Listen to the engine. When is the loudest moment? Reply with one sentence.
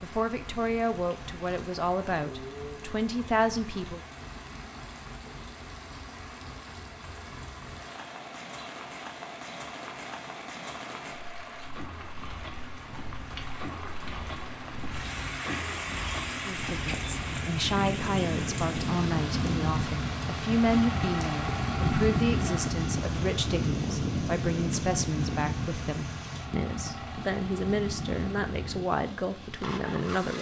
The volume of the engine peaks at 22 seconds.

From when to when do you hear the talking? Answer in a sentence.
The talking can be heard from 0.0 to 4.0 s and from 16.4 to 30.3 s.